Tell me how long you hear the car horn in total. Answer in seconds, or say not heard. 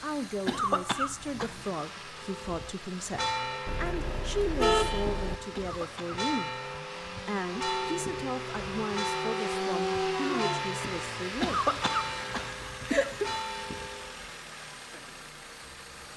2 s.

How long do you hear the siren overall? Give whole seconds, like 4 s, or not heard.
3 s.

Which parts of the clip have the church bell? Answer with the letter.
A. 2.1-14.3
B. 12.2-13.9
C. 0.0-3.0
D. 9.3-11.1
A.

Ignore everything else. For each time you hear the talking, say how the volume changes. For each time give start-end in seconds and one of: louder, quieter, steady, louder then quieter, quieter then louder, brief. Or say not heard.
0.0-11.6 steady.